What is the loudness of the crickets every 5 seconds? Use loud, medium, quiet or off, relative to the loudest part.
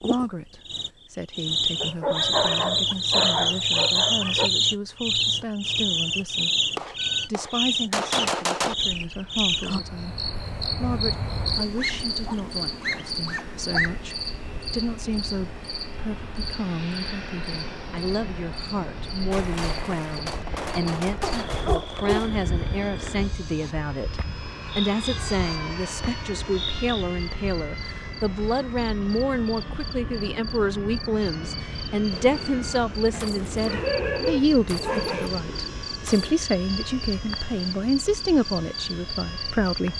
loud, loud, medium, quiet, quiet, quiet, quiet, medium.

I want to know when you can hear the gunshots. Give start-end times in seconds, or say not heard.
6.8-8.8, 19.3-22.3, 32.1-36.4.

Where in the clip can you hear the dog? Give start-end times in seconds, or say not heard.
1.8-4.5, 11.8-14.0, 21.2-22.4, 33.1-35.3.